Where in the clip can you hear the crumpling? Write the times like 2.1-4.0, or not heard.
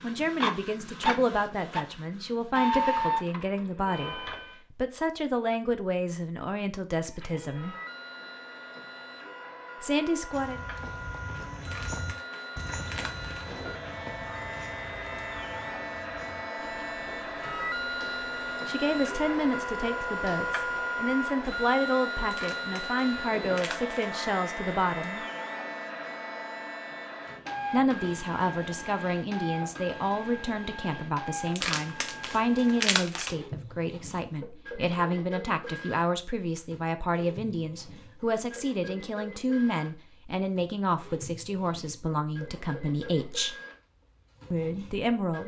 11.6-13.4, 22.2-24.1, 31.4-33.4.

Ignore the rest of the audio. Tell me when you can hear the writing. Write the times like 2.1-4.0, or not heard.
not heard.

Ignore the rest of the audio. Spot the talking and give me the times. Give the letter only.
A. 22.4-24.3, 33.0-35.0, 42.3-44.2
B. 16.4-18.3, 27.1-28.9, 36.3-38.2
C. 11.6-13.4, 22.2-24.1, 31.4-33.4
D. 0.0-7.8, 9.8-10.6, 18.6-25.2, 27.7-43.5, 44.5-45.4
D.